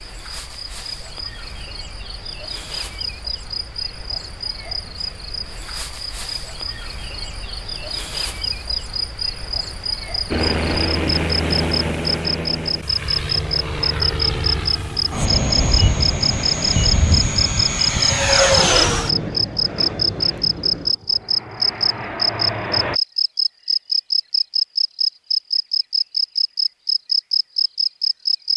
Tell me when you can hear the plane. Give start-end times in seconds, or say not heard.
10.3-23.0.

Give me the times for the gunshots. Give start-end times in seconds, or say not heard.
not heard.